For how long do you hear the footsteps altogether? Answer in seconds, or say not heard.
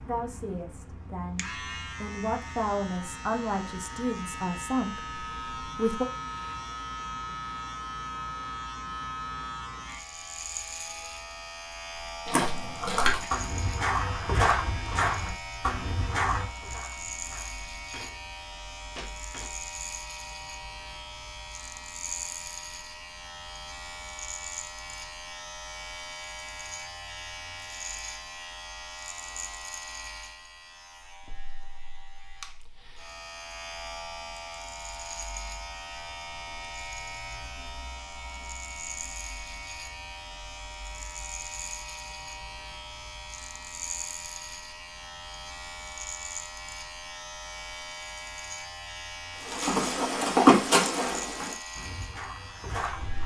11 s.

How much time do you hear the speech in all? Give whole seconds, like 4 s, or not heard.
6 s.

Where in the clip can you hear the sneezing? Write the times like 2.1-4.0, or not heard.
not heard.